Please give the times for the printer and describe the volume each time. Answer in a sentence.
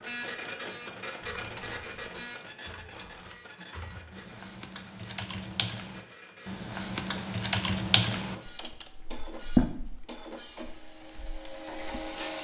You can hear the printer from 0.0 to 12.4 s, getting quieter then louder.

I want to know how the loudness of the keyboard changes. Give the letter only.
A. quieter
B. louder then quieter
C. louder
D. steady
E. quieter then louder
B.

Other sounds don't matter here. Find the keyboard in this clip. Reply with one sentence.
You can hear the keyboard from 1.2 to 12.2 s.